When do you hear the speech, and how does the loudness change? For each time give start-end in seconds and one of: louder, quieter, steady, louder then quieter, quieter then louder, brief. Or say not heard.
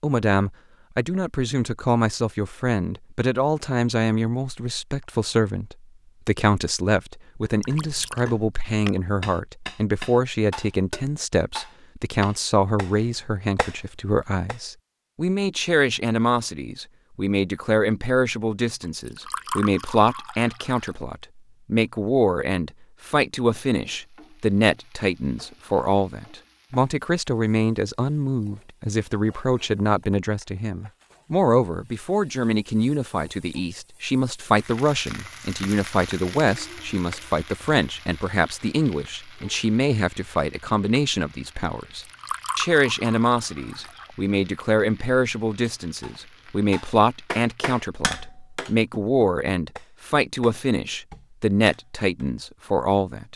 0.0-53.3 steady.